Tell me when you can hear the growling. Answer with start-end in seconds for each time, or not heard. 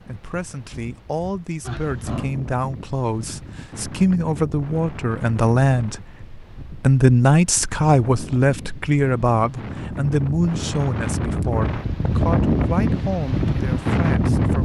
1.6-2.3.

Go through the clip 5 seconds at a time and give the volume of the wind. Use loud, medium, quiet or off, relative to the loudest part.
quiet, quiet, loud.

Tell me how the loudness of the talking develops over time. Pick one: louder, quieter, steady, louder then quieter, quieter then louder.
louder then quieter.